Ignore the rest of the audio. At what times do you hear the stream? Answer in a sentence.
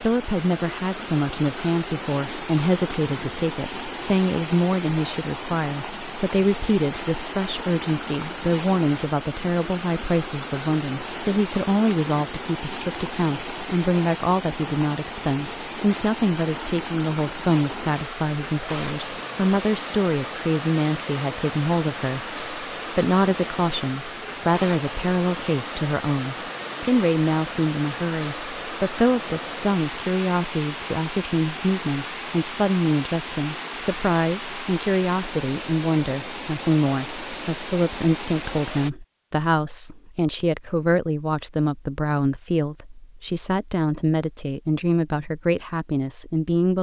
The stream can be heard from 0.0 to 38.9 s.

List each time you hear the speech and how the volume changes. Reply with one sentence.
You can hear the speech from 0.0 to 46.7 s, at a steady volume.